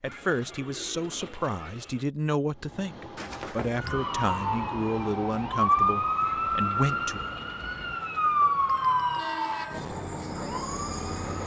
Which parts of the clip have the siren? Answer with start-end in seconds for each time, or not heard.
3.8-11.4.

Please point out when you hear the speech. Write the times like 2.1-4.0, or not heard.
0.0-7.2.